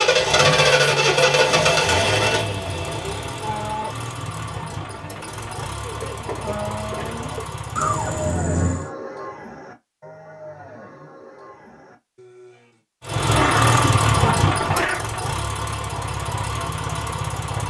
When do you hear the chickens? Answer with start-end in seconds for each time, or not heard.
not heard.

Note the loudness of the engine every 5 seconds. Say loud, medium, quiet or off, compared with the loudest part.
loud, quiet, loud, medium.